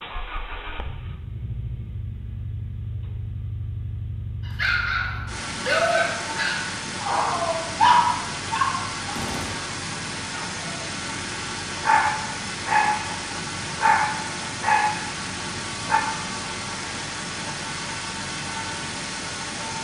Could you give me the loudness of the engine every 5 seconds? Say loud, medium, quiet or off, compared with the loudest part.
medium, loud, loud, loud.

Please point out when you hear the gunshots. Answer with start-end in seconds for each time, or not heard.
9.1-9.7.